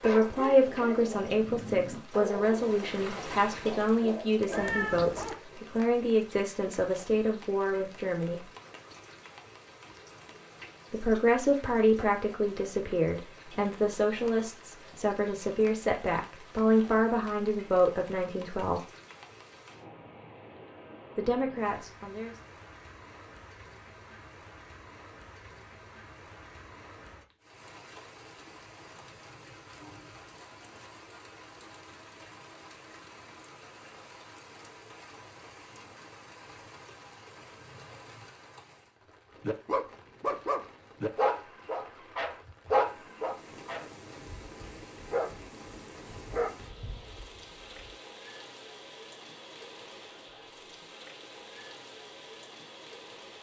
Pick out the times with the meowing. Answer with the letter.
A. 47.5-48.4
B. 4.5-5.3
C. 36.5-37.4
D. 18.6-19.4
B.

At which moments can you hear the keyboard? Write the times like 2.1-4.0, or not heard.
not heard.